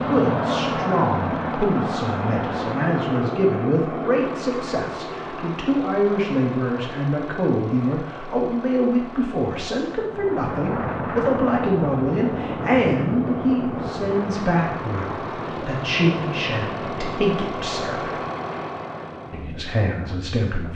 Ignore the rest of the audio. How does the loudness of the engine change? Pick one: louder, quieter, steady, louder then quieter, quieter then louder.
quieter then louder.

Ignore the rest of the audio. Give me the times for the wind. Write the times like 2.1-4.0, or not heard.
10.1-20.7.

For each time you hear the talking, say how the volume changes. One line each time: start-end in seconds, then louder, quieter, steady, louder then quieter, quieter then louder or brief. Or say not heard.
0.0-18.1 steady
19.3-20.7 brief.